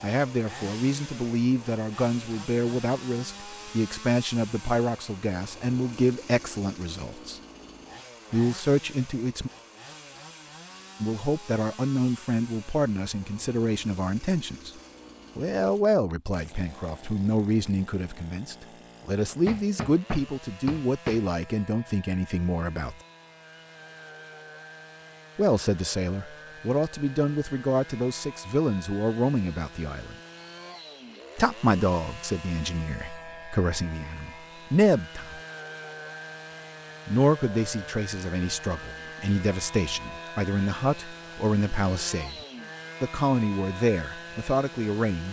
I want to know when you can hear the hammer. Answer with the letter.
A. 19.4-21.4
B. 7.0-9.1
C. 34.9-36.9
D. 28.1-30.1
A.